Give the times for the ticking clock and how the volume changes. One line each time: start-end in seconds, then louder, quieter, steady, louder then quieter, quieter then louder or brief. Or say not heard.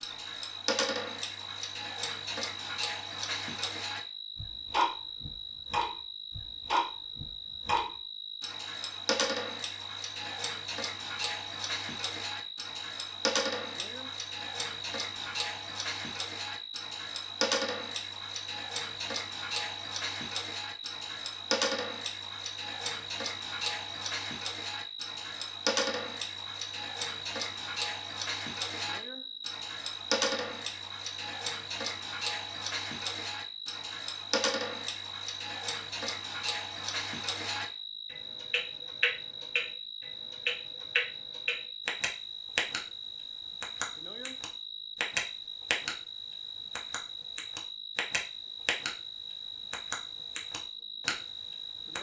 0.0-42.8 steady
43.6-46.0 brief
46.8-48.9 brief
49.7-51.9 brief.